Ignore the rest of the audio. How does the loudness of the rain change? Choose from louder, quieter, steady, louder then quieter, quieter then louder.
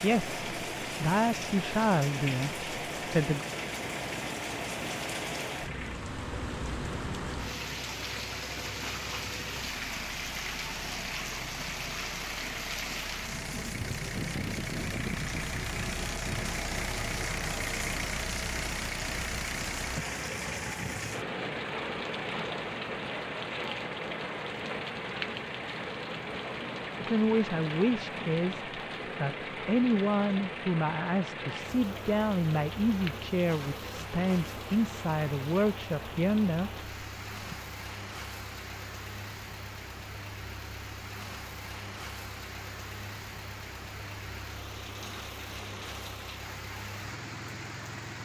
quieter.